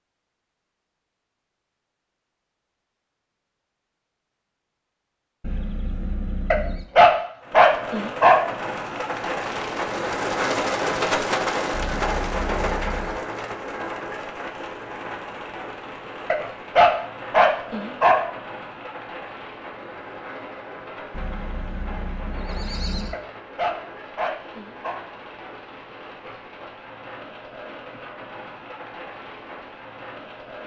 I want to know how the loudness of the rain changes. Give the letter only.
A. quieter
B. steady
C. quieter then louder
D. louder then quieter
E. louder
A.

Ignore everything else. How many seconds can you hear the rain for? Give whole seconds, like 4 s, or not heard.
23 s.